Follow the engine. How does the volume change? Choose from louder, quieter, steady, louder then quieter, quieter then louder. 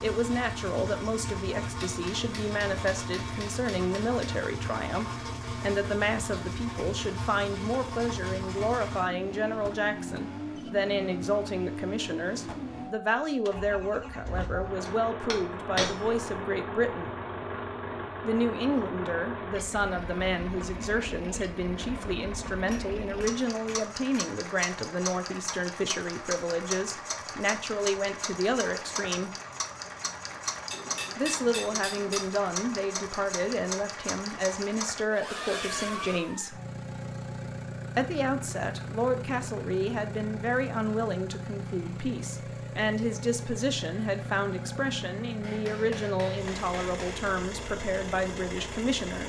steady.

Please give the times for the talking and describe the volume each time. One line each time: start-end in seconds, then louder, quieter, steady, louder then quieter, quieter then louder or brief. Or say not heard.
0.0-17.1 steady
18.2-29.3 steady
31.1-36.6 steady
38.0-49.2 steady.